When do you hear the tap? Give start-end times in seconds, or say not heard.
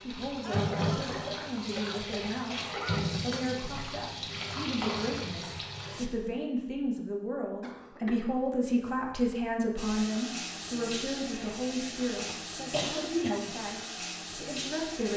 0.0-6.1, 9.8-15.1.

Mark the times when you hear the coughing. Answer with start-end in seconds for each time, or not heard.
0.4-3.0, 7.6-8.3, 12.3-13.6.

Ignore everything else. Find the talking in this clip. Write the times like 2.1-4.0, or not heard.
0.0-15.1.